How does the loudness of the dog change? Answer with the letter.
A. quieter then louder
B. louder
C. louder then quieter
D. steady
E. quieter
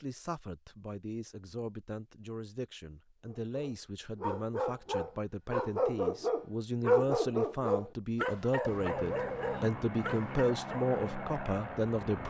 C.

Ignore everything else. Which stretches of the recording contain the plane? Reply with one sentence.
The plane can be heard from 8.7 to 12.2 s.